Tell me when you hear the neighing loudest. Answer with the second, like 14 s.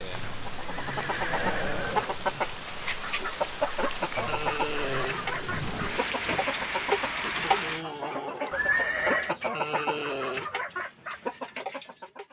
9 s.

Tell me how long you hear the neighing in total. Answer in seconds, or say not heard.
4 s.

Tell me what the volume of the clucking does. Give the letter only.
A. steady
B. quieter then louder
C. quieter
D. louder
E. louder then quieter
A.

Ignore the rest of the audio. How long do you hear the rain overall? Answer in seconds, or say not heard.
8 s.